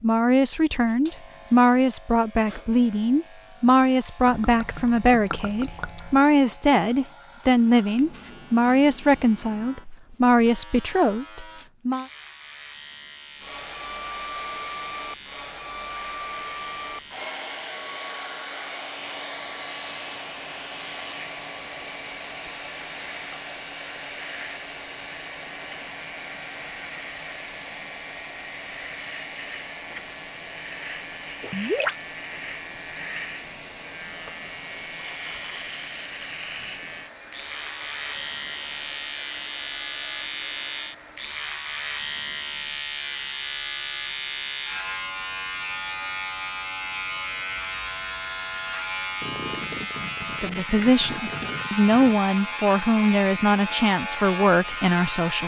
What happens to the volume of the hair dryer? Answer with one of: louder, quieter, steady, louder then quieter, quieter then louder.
quieter.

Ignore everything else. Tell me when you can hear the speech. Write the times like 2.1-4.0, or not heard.
0.0-12.1, 50.4-55.4.